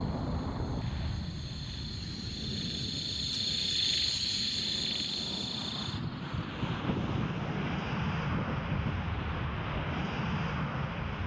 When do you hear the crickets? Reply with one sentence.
You can hear the crickets from 0.0 to 9.3 s.